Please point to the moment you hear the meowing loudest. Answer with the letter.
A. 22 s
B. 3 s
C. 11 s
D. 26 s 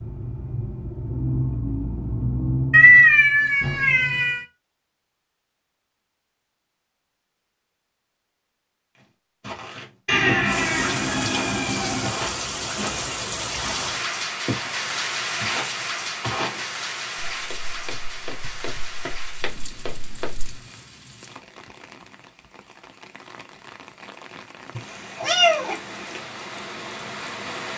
B.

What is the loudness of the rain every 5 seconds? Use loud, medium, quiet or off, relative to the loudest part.
off, off, loud, loud, quiet, medium.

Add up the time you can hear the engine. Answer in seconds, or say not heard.
3 s.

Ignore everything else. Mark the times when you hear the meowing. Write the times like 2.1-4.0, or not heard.
2.7-4.5, 10.1-12.1, 24.8-26.2.